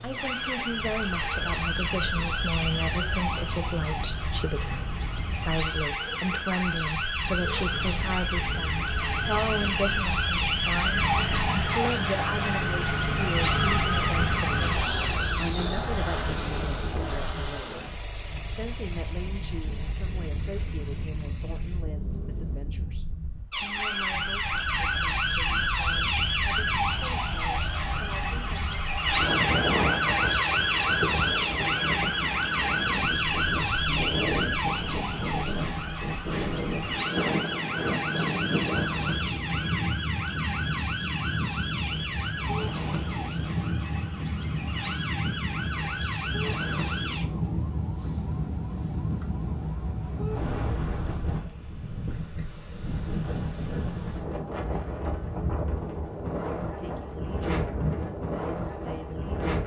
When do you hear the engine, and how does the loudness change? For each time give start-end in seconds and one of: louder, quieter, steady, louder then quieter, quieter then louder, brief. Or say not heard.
0.0-22.6 louder then quieter.